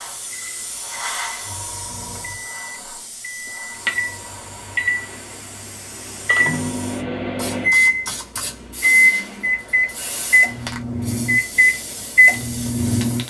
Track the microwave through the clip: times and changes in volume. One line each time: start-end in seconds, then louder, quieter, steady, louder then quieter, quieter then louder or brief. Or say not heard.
0.0-13.2 louder.